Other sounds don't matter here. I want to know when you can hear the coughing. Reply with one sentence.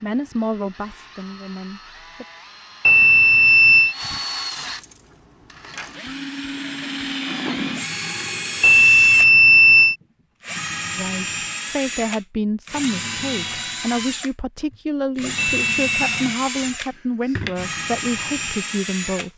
The coughing can't be heard in this clip.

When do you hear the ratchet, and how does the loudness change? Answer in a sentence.
The ratchet can't be heard in this clip.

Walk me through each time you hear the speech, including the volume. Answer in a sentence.
You can hear the speech briefly from 0.0 to 2.2 s; and from 10.9 to 19.3 s, at a steady volume.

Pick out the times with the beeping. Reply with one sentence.
The beeping can be heard from 2.9 to 4.0 s, from 8.6 to 9.9 s and from 15.3 to 16.0 s.